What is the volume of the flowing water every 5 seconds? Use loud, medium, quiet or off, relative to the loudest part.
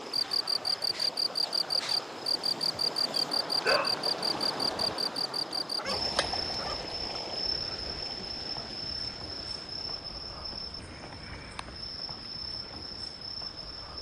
loud, loud, quiet.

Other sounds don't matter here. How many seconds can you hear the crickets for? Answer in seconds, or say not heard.
14 s.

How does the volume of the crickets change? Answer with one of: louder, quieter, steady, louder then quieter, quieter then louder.
quieter.